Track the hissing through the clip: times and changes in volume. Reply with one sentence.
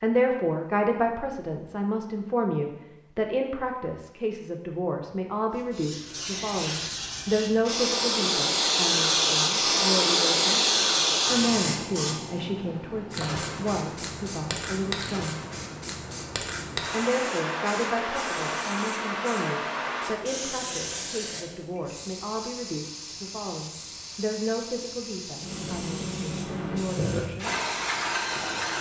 The hissing can be heard from 5.5 to 28.7 s, getting quieter.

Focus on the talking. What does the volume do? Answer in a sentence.
The loudness of the talking goes down.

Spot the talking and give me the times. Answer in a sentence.
The talking can be heard from 0.0 to 10.7 s, from 11.2 to 15.4 s and from 16.9 to 27.6 s.